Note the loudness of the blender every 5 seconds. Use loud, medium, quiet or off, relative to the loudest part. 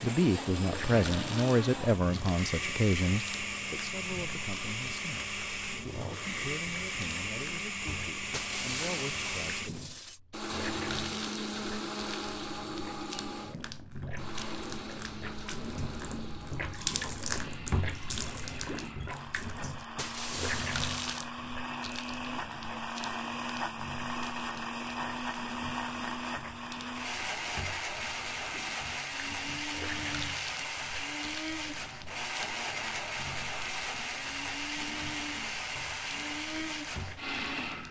loud, loud, loud, medium, loud, loud, loud, loud.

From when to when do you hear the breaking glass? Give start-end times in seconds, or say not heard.
8.3-10.2, 19.9-21.2.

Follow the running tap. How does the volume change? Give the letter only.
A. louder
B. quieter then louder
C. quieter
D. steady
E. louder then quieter
E.